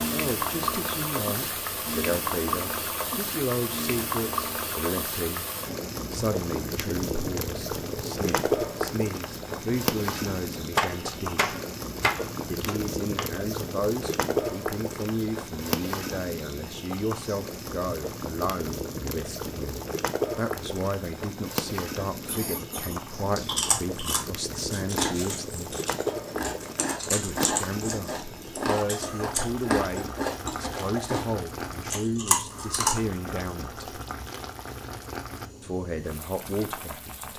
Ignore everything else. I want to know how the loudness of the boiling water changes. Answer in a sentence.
The volume of the boiling water goes down.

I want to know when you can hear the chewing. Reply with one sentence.
You can hear the chewing from 23.2 to 33.0 s.